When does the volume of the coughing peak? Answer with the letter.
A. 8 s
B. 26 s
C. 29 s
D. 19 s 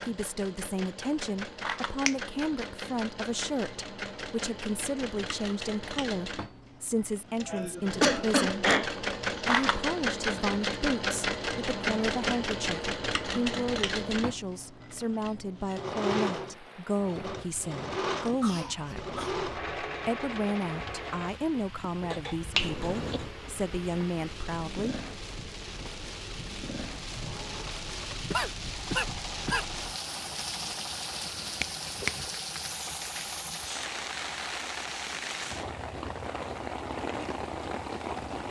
A.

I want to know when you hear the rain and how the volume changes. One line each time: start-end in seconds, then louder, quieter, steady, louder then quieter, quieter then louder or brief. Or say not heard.
16.3-38.4 louder.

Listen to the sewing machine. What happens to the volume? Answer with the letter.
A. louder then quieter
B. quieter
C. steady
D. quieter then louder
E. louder
A.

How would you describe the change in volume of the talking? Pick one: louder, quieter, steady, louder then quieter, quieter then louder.
steady.